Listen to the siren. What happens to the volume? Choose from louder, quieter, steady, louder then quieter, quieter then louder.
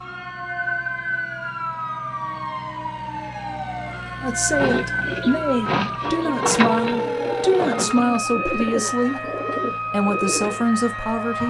steady.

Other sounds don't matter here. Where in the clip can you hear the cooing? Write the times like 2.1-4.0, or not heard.
4.5-10.7.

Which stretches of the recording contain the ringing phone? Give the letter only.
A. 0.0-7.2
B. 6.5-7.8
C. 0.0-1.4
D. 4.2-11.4
B.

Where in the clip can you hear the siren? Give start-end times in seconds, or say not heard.
0.0-11.4.